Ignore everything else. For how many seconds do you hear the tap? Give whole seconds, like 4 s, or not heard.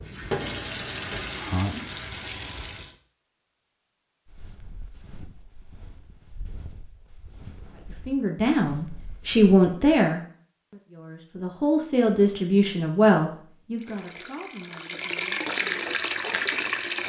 6 s.